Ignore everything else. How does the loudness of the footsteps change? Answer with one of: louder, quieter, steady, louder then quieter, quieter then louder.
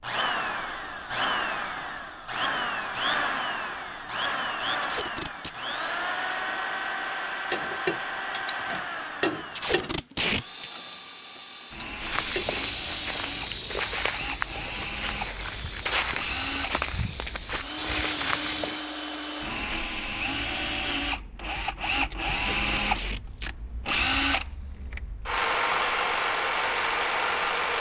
steady.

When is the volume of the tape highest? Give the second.
10 s.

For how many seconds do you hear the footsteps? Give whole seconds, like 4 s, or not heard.
7 s.